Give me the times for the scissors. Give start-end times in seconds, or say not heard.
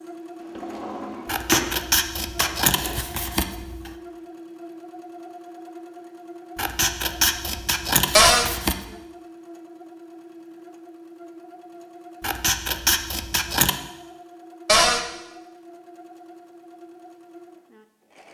1.2-3.9, 6.5-8.8, 12.2-13.8.